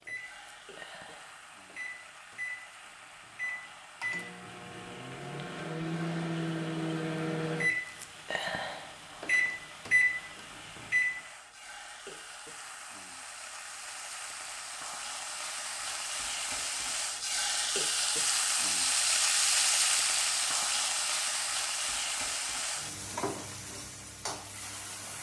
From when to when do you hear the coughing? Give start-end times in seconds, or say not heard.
not heard.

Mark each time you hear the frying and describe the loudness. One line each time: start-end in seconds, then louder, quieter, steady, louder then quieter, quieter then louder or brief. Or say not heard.
0.0-25.1 louder.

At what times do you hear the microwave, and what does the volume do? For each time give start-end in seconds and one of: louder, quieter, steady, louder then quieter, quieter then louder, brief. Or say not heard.
0.0-11.1 louder.